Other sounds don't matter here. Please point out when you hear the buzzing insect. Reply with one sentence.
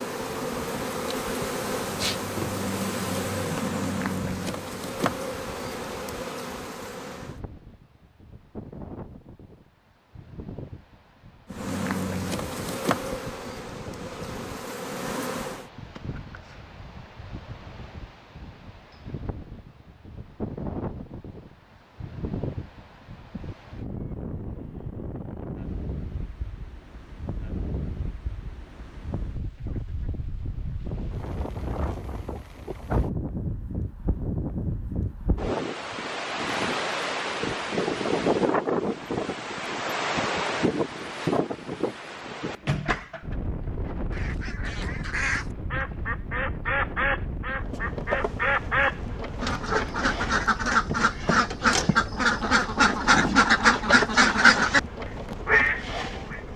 You can hear the buzzing insect from 0.0 to 7.4 s, from 11.5 to 15.7 s and from 47.5 to 56.5 s.